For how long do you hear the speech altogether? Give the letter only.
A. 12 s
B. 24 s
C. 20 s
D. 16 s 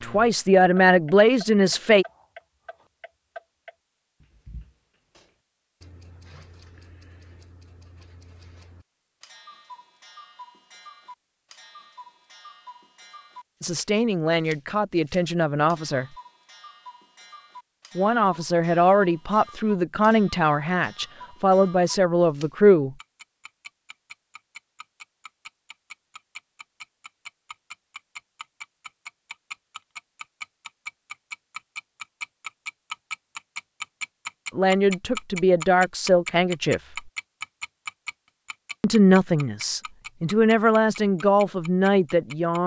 D.